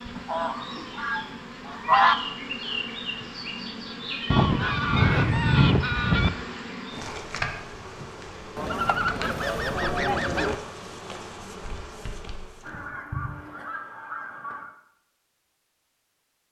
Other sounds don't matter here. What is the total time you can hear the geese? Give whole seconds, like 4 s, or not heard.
8 s.